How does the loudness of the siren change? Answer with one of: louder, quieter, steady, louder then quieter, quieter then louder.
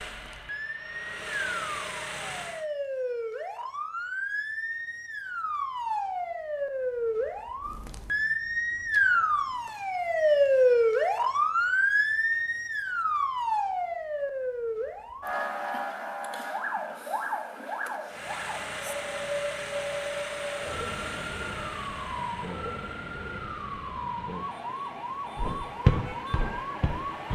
louder then quieter.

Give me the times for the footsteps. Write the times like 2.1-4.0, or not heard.
25.4-27.2.